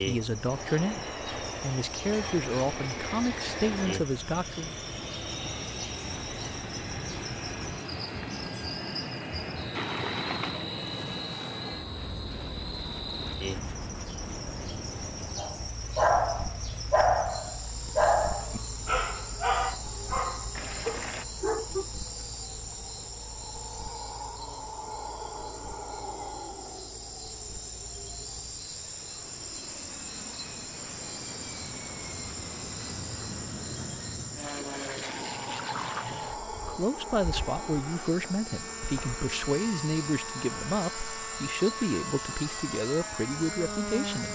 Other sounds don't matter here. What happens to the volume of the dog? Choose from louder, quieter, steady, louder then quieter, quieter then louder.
quieter.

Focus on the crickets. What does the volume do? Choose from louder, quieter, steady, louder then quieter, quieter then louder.
steady.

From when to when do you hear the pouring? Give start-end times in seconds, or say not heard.
9.7-10.7, 20.6-21.2, 35.6-36.1.